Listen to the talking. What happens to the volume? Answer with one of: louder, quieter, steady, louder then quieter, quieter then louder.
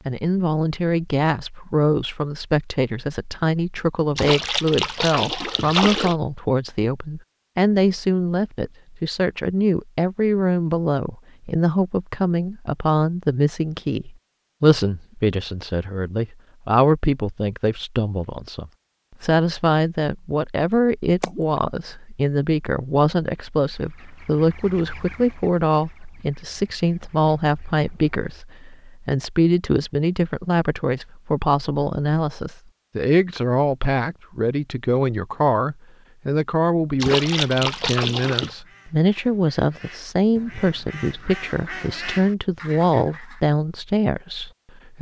steady.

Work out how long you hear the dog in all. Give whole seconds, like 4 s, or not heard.
not heard.